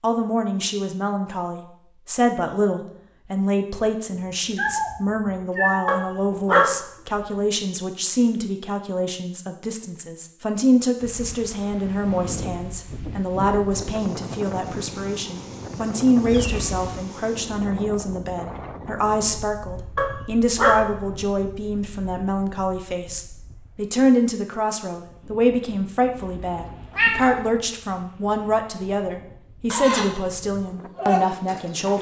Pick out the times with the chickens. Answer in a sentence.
The chickens can be heard from 29.7 to 31.9 s.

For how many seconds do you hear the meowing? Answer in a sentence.
You can hear the meowing for 4 seconds altogether.